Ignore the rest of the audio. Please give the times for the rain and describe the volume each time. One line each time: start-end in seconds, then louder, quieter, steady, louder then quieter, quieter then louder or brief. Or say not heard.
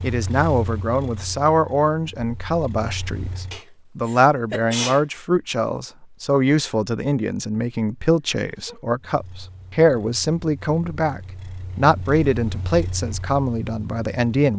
not heard.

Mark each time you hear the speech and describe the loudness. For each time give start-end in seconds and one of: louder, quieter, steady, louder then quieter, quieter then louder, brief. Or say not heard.
0.0-14.5 steady.